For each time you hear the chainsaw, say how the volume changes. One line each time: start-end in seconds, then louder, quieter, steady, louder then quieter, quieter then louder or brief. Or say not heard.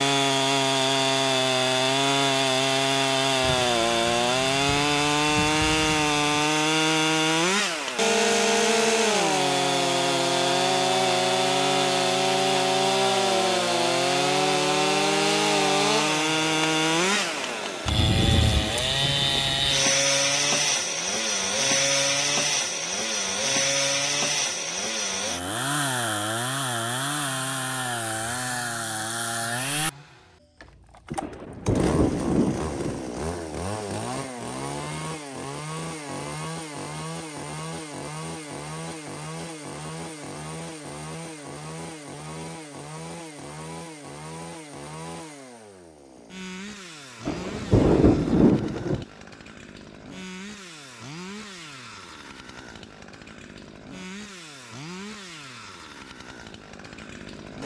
0.0-57.6 quieter.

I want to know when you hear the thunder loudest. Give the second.
48 s.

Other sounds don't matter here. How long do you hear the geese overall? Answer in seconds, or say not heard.
not heard.